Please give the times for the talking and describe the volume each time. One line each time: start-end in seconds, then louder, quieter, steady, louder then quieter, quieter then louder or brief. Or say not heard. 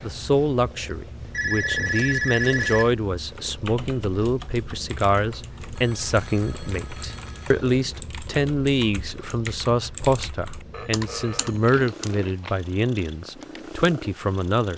0.0-14.7 steady.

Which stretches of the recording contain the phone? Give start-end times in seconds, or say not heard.
1.3-3.0, 5.8-7.5, 10.7-11.8.